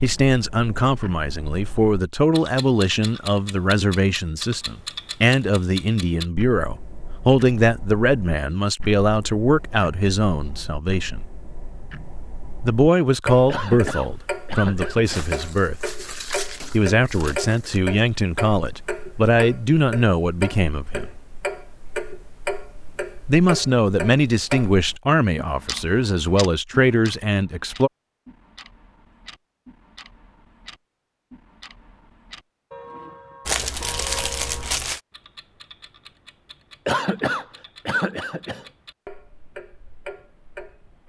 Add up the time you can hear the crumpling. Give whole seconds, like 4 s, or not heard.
4 s.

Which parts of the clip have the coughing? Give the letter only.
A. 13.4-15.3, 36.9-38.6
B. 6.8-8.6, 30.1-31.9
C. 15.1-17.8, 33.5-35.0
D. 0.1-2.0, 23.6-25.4
A.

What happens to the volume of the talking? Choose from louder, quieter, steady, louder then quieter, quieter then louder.
steady.